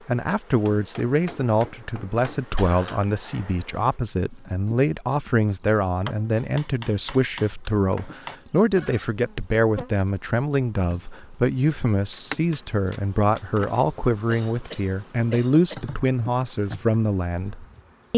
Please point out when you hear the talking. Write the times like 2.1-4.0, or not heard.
0.1-18.1.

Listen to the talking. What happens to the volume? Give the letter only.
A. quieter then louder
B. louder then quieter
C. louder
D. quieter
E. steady
E.